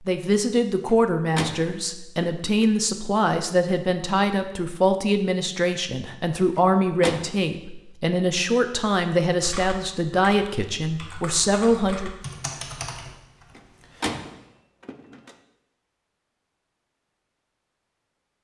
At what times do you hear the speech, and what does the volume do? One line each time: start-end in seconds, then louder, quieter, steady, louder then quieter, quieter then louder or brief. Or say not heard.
0.1-12.1 steady.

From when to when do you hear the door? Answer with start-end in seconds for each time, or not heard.
0.8-2.6, 6.5-7.4, 13.6-15.3.